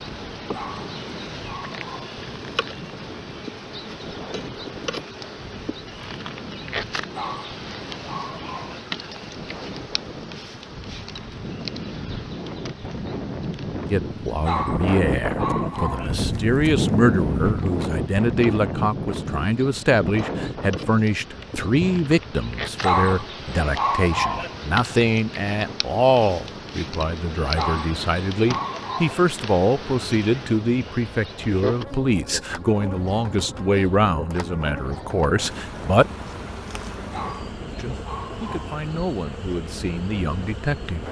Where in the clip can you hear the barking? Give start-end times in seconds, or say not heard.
0.5-2.2, 7.1-8.8, 14.4-16.1, 22.8-24.6, 27.6-29.2, 37.1-38.8.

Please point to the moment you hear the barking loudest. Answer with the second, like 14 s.
23 s.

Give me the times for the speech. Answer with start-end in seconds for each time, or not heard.
13.9-36.1, 37.8-41.0.